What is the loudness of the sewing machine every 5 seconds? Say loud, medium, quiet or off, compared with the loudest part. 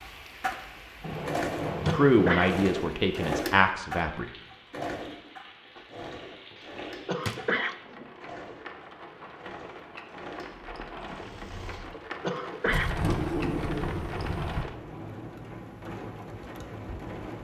loud, medium, quiet, off.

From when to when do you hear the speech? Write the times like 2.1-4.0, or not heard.
1.9-4.2.